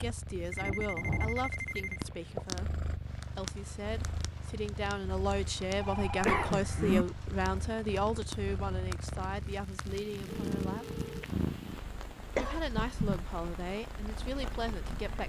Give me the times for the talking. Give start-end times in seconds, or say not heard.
0.0-11.1, 12.3-15.2.